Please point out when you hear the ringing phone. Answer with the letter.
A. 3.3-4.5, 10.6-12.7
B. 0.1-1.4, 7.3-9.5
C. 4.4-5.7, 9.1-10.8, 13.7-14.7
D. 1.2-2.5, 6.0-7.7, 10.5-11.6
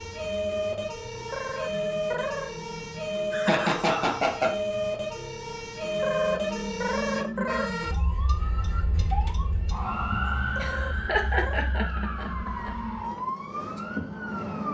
D.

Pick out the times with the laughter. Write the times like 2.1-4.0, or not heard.
3.3-4.5, 10.6-12.7.